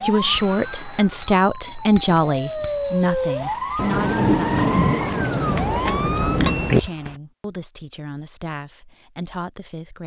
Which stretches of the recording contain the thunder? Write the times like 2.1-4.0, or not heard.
3.8-6.8.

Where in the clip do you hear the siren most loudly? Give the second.
3 s.